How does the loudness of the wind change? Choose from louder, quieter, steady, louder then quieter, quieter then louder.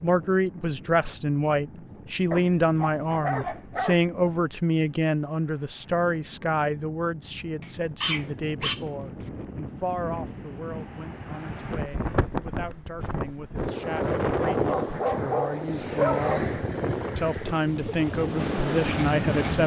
louder.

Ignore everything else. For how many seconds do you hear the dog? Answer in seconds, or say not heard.
6 s.